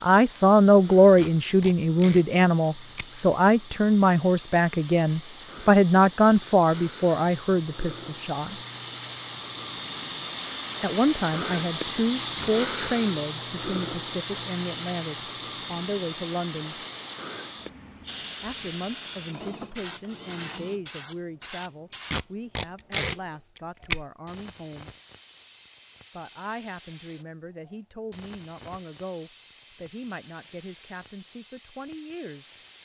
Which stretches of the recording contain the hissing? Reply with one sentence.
The hissing can be heard from 0.0 to 32.7 s.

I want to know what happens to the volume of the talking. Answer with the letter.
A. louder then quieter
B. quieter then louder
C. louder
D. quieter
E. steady
D.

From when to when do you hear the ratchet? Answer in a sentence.
The ratchet can be heard from 19.2 to 20.9 s.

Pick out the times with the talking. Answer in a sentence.
You can hear the talking from 0.0 to 8.6 s, from 10.8 to 16.8 s, from 18.4 to 24.9 s and from 26.1 to 32.5 s.